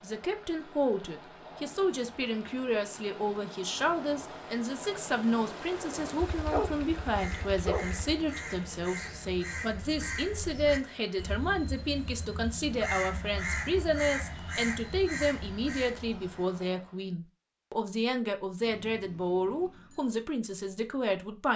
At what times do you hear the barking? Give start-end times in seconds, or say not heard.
6.2-8.2.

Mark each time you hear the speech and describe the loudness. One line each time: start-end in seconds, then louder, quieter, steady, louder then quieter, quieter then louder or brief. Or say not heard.
0.0-21.5 steady.